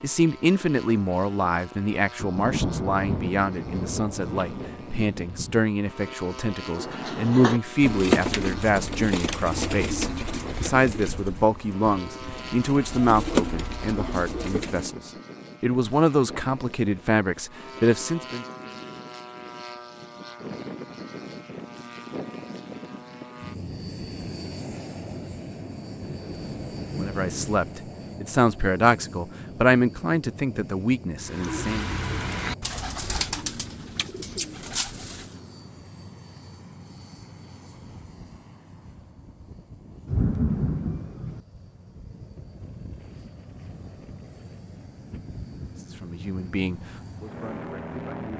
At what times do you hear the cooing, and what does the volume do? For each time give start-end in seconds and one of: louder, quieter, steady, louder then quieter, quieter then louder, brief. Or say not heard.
6.7-14.9 quieter then louder
31.2-35.4 quieter then louder.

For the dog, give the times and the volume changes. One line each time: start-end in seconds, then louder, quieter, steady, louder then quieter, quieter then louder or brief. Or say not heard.
not heard.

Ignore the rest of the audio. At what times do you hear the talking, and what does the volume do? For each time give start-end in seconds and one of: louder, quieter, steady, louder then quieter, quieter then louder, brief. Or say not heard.
0.0-18.4 steady
26.9-31.9 louder then quieter
46.0-48.2 brief.